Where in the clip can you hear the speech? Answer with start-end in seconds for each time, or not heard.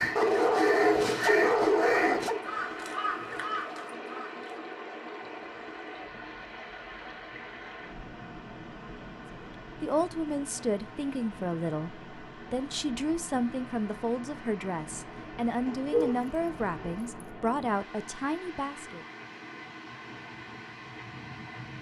9.3-19.1.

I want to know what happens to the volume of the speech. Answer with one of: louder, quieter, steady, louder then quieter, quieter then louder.
steady.